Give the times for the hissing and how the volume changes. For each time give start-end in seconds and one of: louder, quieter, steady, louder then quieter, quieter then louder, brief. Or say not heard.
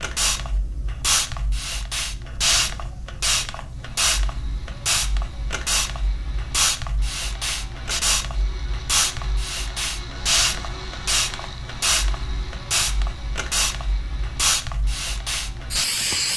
0.0-16.3 steady.